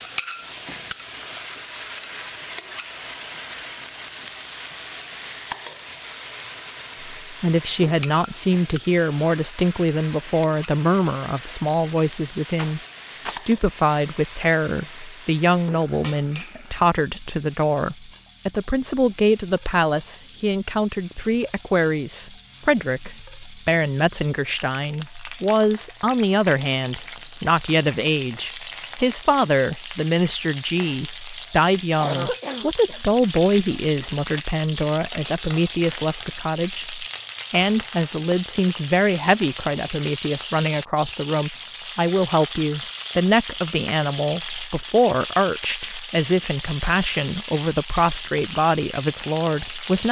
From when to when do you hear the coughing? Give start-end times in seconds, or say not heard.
31.4-33.0.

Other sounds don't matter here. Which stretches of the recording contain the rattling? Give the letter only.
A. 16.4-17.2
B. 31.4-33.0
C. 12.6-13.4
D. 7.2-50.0
C.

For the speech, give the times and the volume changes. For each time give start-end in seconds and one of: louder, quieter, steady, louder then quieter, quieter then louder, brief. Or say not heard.
7.2-50.0 steady.